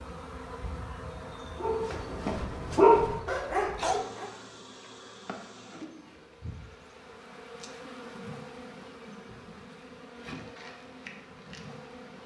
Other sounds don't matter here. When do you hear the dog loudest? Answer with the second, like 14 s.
3 s.